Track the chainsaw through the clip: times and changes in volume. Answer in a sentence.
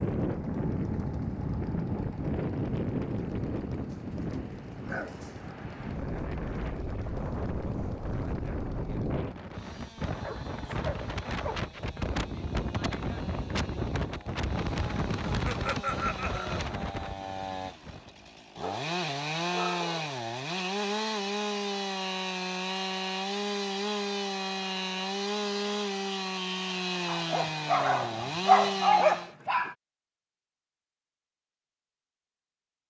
The chainsaw can be heard from 0.0 to 29.4 s, getting louder.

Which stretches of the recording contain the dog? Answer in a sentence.
The dog can be heard from 3.9 to 5.5 s, from 10.2 to 11.6 s, from 18.6 to 20.1 s and from 27.1 to 29.8 s.